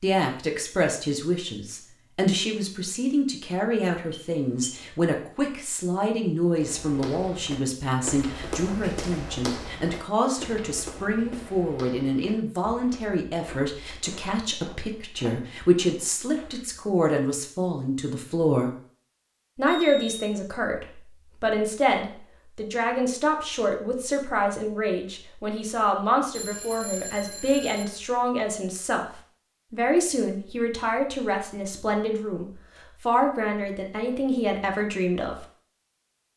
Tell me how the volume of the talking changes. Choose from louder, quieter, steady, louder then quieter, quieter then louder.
steady.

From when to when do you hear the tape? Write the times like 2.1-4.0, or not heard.
not heard.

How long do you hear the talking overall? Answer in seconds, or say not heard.
34 s.